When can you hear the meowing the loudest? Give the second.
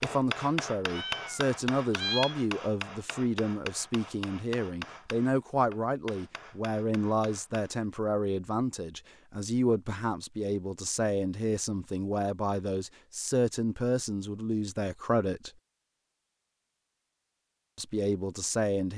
2 s.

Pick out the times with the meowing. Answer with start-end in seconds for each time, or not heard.
0.8-2.4.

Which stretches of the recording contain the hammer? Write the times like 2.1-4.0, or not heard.
0.0-7.8.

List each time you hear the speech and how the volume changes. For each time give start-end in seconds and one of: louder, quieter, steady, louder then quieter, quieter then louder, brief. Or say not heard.
0.0-15.5 steady
17.8-18.9 brief.